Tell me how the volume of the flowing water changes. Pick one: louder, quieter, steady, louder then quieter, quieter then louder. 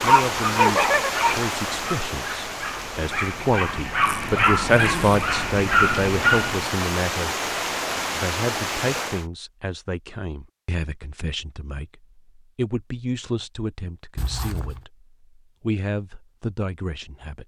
quieter then louder.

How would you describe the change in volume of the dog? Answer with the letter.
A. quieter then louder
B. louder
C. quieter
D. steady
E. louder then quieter
A.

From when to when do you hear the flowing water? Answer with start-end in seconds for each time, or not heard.
0.0-9.2.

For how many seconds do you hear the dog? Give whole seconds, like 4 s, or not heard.
7 s.